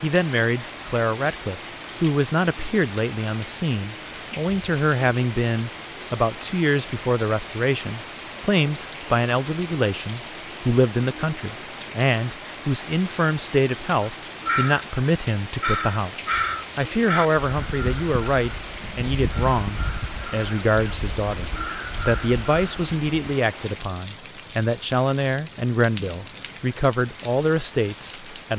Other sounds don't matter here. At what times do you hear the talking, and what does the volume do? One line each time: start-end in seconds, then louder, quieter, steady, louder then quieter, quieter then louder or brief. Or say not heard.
0.0-28.5 steady.